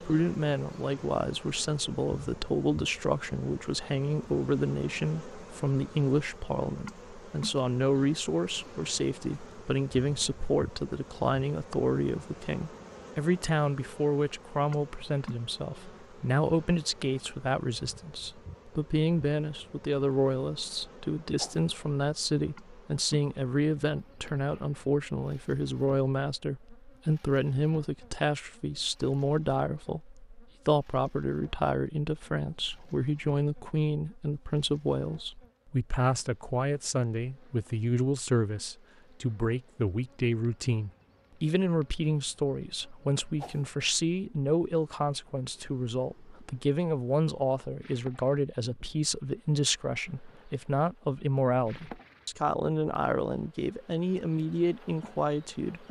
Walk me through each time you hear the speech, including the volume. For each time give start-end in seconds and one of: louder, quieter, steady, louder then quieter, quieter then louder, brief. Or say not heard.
0.0-55.8 steady.